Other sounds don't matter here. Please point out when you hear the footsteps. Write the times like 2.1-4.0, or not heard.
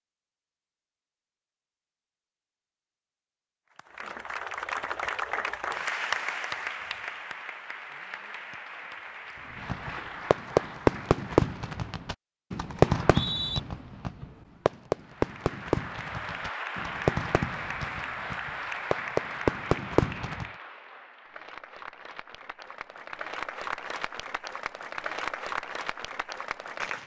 not heard.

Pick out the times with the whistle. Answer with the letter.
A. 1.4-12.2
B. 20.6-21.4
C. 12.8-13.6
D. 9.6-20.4
C.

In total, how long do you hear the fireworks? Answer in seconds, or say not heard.
11 s.